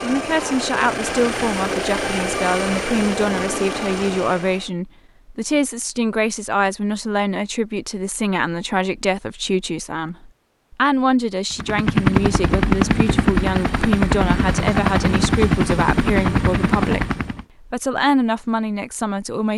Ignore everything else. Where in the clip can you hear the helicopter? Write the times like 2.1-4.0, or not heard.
0.0-4.7, 11.5-17.4.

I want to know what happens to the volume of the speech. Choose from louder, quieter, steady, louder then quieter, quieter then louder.
steady.